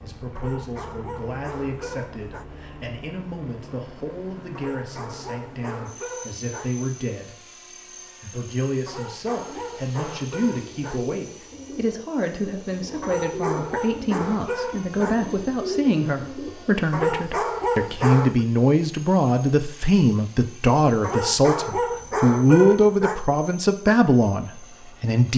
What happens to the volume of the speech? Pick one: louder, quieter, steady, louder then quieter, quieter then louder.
louder.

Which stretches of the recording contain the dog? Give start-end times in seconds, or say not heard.
0.3-2.5, 4.5-6.8, 8.8-11.1, 13.0-15.2, 16.9-18.4, 21.0-23.2.